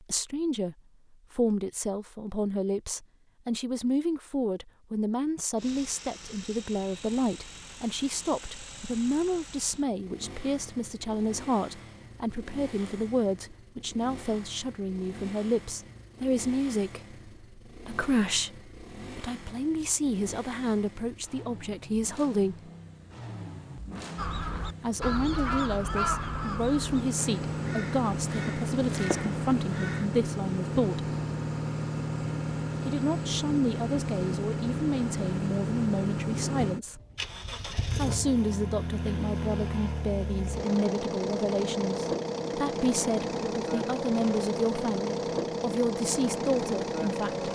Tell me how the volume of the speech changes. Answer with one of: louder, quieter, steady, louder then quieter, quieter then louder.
steady.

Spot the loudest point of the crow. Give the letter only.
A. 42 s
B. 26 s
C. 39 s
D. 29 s
B.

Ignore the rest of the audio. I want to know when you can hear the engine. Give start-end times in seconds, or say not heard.
5.5-47.4.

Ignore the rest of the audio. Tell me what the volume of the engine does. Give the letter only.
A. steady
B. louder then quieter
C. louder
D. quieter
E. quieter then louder
C.